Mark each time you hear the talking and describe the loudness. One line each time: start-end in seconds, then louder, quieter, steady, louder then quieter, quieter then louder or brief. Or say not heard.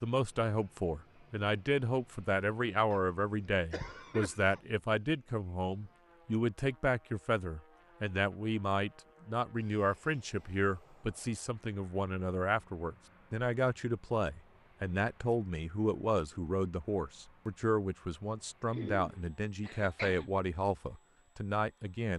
0.0-22.1 steady.